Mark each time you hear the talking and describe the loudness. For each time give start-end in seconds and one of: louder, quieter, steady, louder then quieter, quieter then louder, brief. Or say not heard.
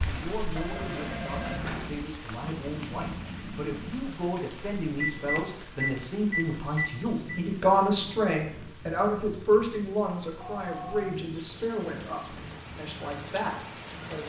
0.0-14.2 louder then quieter.